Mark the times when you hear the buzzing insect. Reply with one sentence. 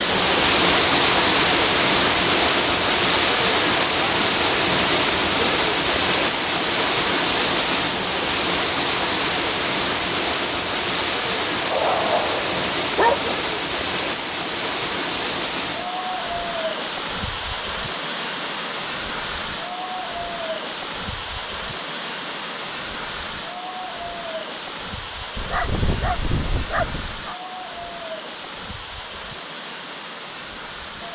You can't hear the buzzing insect here.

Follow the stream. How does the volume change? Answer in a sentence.
The volume of the stream goes down.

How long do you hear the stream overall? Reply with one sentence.
The stream can be heard for 31 seconds in total.